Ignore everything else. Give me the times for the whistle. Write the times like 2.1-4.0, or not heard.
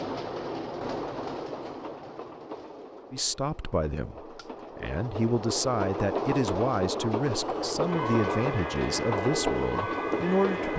not heard.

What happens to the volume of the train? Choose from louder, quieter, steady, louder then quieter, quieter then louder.
quieter then louder.